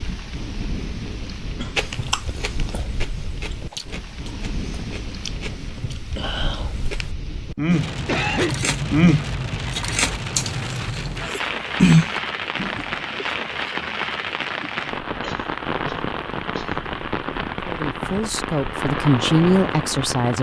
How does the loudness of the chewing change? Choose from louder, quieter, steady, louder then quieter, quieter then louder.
louder.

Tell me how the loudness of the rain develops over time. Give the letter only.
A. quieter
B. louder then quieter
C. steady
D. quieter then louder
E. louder
E.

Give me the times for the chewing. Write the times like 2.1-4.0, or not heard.
1.8-12.9.